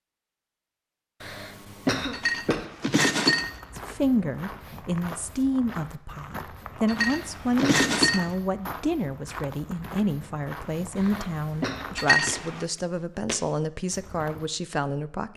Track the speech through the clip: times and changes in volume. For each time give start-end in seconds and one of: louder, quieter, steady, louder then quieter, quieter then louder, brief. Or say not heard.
3.8-15.3 steady.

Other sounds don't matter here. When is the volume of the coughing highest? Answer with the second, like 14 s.
2 s.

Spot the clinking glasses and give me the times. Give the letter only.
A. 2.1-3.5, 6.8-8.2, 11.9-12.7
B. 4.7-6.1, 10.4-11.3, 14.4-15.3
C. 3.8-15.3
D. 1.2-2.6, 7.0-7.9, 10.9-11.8
A.